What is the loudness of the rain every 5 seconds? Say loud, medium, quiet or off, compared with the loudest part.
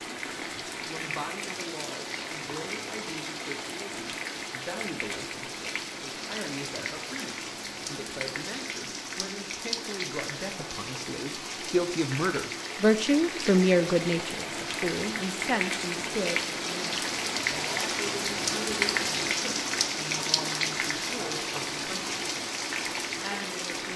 medium, medium, medium, loud, loud.